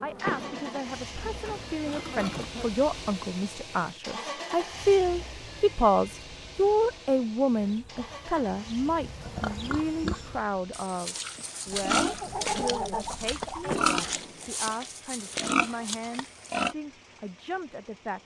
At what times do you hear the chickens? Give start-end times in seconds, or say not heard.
11.7-14.2.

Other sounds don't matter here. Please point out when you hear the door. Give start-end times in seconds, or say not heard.
0.2-1.0, 13.7-14.4.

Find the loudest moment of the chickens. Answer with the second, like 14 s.
13 s.